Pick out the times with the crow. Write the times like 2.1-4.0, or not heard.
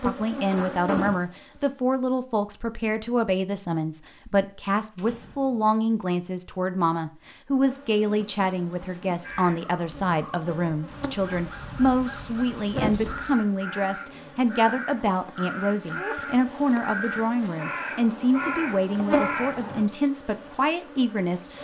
9.2-19.9.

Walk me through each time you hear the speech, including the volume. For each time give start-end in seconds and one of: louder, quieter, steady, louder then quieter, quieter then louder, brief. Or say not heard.
0.0-21.5 steady.